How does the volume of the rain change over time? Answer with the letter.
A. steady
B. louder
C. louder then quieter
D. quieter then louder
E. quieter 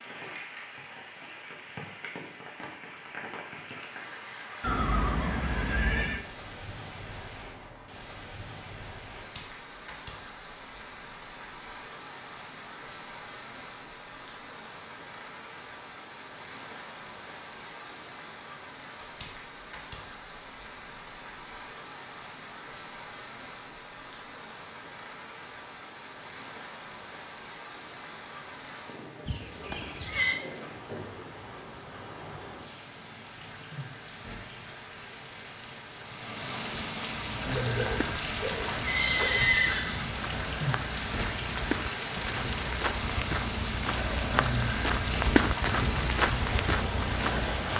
B.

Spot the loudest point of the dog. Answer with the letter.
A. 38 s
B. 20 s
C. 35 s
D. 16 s
A.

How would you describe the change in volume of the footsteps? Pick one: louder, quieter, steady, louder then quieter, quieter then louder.
louder.